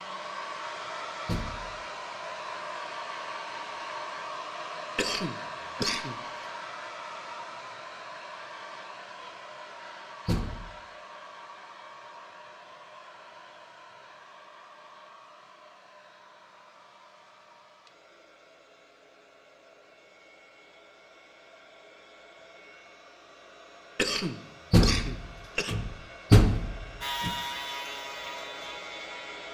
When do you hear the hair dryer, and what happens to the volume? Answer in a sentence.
The hair dryer can be heard from 0.0 to 29.4 s, getting quieter then louder.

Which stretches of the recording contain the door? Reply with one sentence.
You can hear the door from 1.2 to 1.8 s, from 10.2 to 10.8 s and from 24.7 to 27.3 s.